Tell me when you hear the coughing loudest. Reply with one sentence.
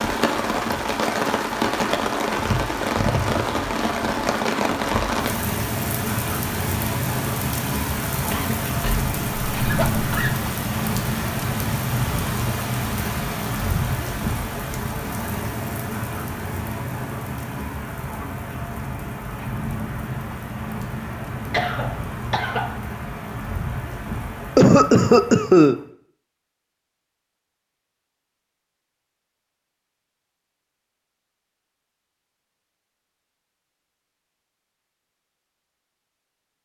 The volume of the coughing peaks at 25 seconds.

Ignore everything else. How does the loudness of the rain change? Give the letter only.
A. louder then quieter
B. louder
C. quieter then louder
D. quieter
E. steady
D.